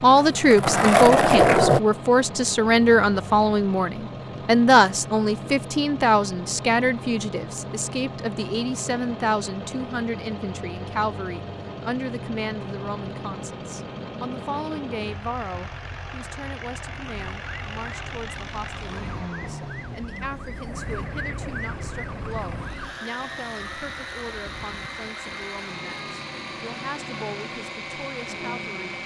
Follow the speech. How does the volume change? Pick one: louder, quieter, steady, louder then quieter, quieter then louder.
quieter.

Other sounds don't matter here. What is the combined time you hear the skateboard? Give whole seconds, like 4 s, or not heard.
2 s.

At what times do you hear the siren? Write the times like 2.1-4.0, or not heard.
16.9-29.0.